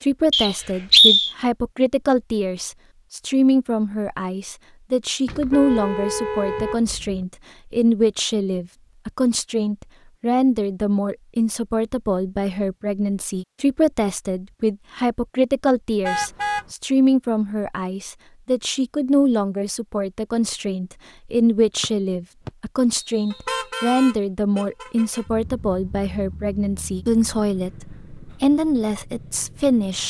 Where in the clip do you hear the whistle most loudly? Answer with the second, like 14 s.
1 s.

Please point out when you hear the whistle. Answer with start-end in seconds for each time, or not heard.
0.3-1.3, 21.8-23.4.